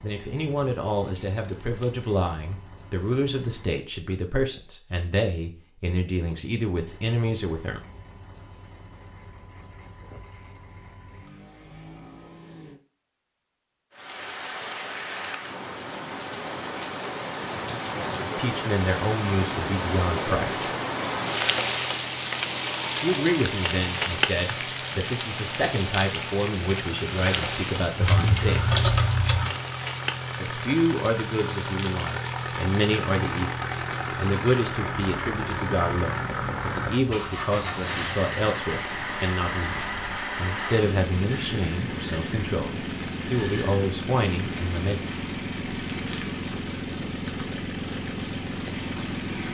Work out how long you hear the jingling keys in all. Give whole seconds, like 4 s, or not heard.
5 s.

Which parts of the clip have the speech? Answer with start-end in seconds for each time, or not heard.
0.0-7.8, 18.4-20.8, 23.0-28.8, 30.4-45.0.